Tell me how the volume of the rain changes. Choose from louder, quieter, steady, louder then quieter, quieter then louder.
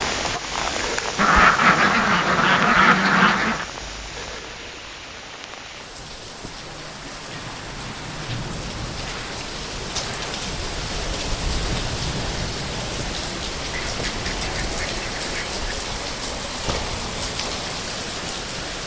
quieter then louder.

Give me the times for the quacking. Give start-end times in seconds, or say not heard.
1.1-3.6, 13.7-15.8.